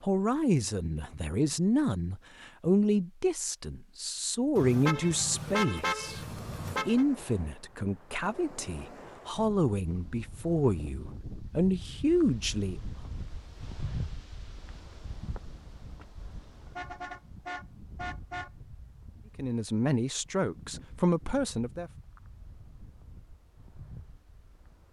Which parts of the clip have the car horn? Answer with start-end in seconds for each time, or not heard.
4.5-7.0, 16.6-18.5.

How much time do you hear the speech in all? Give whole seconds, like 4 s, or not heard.
15 s.